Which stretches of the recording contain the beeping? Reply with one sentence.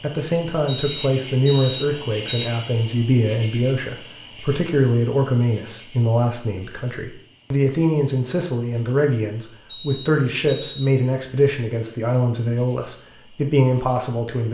You can hear the beeping from 0.7 to 2.5 s and from 9.7 to 10.9 s.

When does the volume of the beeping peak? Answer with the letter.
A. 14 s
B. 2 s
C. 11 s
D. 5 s
B.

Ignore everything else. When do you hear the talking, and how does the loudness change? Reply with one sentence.
The talking can be heard from 0.0 to 14.4 s, at a steady volume.